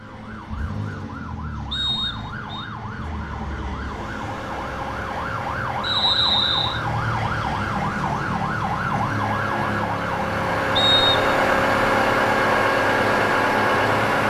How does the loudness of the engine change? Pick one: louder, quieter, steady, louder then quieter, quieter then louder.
louder.